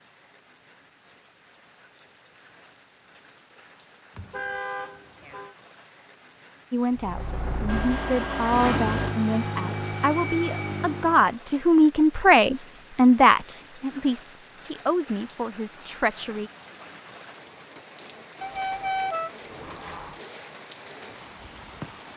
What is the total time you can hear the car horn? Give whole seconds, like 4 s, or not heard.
5 s.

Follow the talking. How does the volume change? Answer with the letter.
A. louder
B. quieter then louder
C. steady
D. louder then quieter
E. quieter
D.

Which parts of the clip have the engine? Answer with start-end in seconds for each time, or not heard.
7.0-11.3.